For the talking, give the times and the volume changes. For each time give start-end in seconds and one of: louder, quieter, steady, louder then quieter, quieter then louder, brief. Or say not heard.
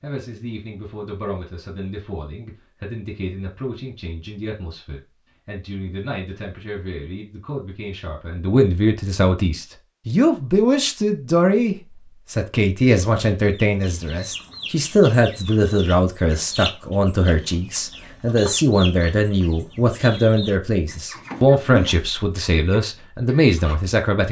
0.0-24.2 louder.